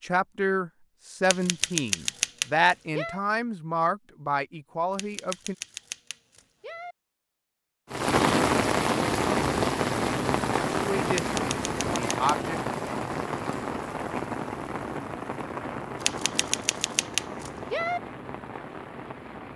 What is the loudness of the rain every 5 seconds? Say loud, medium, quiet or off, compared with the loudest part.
off, loud, medium, quiet.